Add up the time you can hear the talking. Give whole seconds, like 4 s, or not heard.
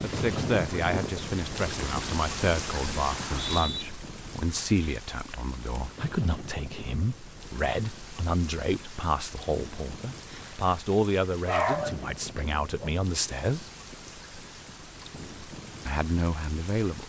15 s.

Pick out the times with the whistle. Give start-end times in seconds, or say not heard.
3.1-3.9.